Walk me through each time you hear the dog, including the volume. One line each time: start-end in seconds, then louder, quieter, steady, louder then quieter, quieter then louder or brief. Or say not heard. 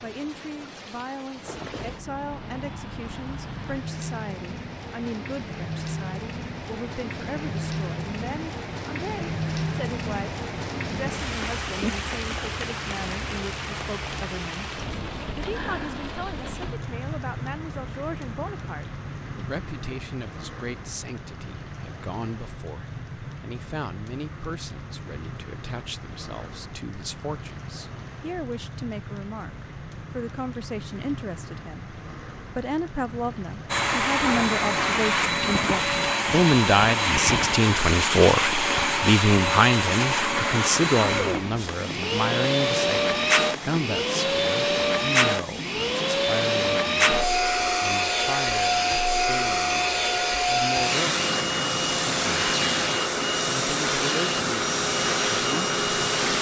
not heard.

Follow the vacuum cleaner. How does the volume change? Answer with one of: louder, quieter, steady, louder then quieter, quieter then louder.
steady.